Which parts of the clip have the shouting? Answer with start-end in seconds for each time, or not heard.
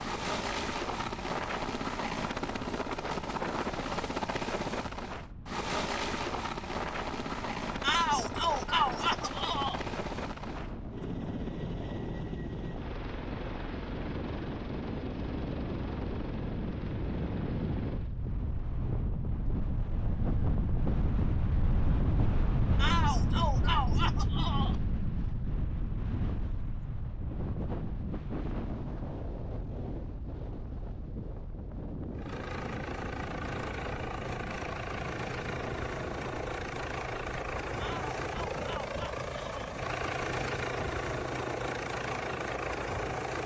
7.8-9.8, 22.8-24.8, 37.8-39.8.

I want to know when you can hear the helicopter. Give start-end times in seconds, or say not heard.
0.0-18.1, 32.1-43.4.